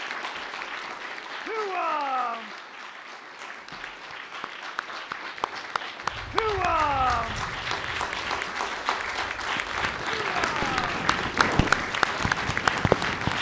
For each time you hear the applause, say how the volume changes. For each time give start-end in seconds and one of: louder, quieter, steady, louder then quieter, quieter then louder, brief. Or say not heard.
0.0-13.3 louder.